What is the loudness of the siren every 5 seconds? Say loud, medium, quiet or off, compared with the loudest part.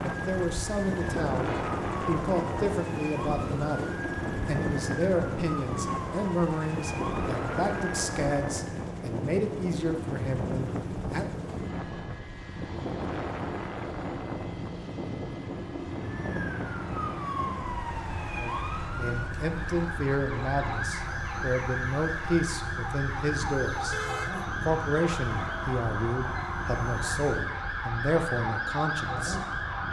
medium, medium, off, loud, loud, loud.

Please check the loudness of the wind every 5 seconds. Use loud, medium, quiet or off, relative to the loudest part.
loud, loud, loud, medium, medium, medium.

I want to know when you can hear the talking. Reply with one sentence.
You can hear the talking from 0.0 to 11.2 s, from 18.4 to 23.9 s and from 24.6 to 29.4 s.